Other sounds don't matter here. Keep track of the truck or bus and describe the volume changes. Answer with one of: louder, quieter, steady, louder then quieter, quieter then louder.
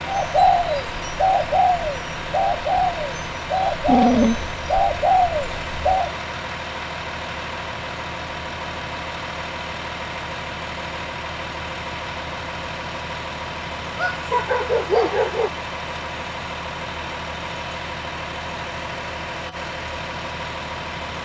steady.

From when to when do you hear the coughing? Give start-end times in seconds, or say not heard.
not heard.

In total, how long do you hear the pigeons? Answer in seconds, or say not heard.
6 s.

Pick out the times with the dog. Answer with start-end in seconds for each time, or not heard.
3.9-4.5, 13.9-15.5.